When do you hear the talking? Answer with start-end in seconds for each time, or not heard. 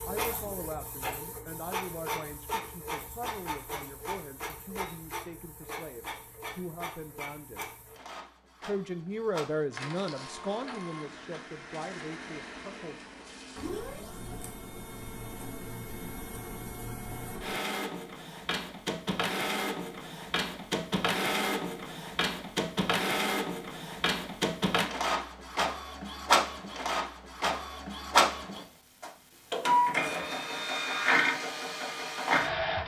0.0-7.7, 8.6-13.0.